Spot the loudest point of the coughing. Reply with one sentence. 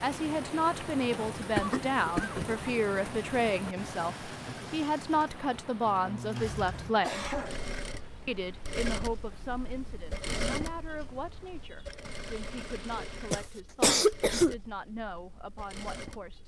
The loudest moment of the coughing is at 14 seconds.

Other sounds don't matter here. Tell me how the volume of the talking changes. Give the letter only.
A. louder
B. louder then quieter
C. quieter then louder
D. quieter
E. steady
D.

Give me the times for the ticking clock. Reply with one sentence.
You can't hear the ticking clock here.